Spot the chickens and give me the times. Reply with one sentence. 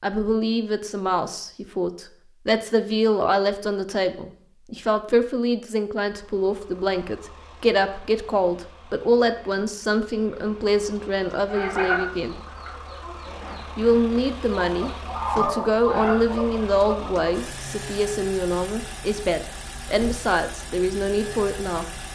You can hear the chickens from 11.5 to 17.3 s.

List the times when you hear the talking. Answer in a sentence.
You can hear the talking from 0.0 to 12.3 s and from 13.8 to 21.9 s.